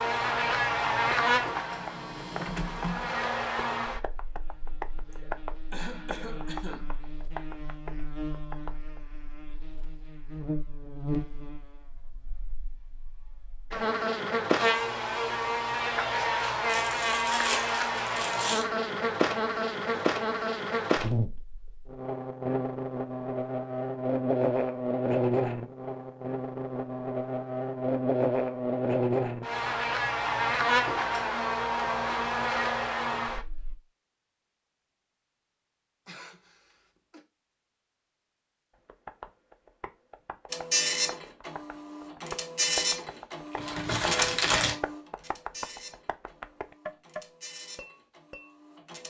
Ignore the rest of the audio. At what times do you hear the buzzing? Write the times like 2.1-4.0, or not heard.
0.0-33.8.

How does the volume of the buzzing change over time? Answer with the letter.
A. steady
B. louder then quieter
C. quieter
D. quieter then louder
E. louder
D.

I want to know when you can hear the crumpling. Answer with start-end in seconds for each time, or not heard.
16.6-18.6, 43.5-44.8.